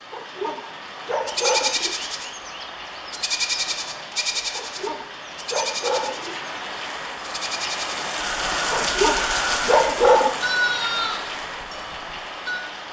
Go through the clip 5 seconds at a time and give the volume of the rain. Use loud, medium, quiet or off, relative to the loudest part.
medium, loud, loud.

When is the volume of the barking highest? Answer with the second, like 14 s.
10 s.